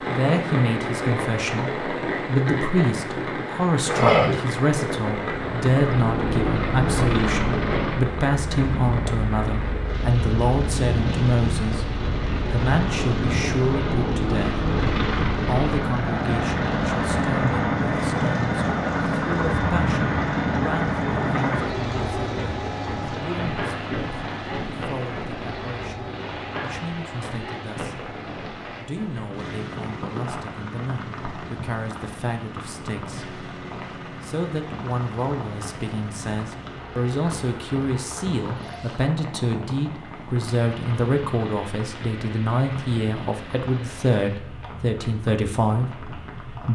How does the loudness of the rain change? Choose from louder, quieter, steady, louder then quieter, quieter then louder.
quieter.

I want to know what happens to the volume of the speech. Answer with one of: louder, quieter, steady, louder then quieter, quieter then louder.
quieter then louder.